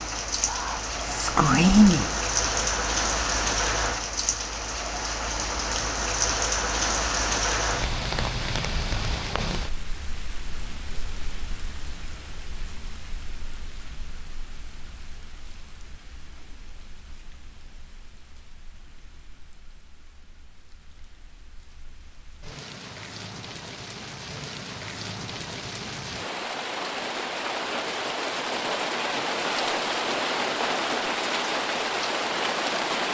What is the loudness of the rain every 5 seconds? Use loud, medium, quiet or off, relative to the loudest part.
loud, loud, quiet, quiet, quiet, loud, loud.